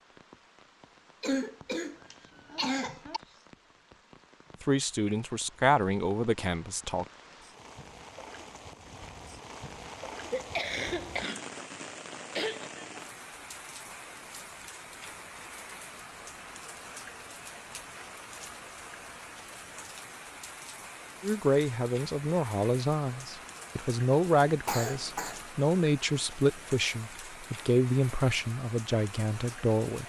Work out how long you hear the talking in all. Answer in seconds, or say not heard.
11 s.